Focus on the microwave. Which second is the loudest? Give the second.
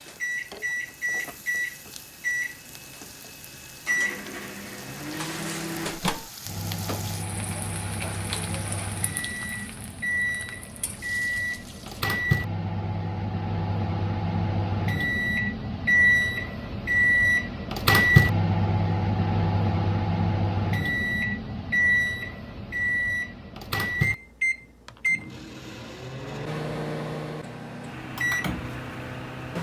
18 s.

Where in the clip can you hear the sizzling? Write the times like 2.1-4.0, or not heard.
0.0-12.1.